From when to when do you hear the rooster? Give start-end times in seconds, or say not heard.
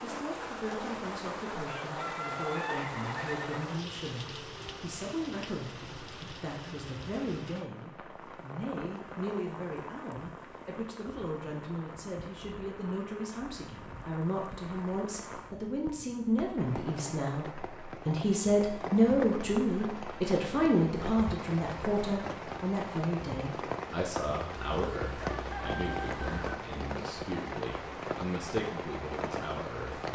1.6-3.6, 24.6-26.6.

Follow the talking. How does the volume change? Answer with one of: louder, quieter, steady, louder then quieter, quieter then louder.
louder then quieter.